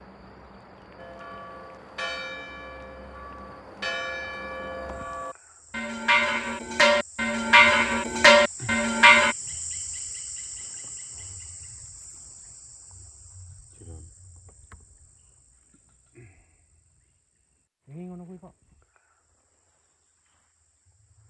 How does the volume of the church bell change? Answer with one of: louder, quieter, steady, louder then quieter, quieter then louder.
louder.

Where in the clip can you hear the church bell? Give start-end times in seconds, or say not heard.
0.9-9.3.